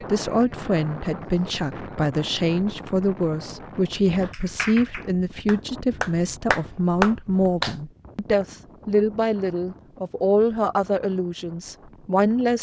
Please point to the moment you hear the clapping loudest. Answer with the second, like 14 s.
7 s.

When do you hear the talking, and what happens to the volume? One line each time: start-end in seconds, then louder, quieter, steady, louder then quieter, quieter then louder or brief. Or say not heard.
0.0-12.5 steady.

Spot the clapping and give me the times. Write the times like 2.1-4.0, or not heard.
4.2-7.8.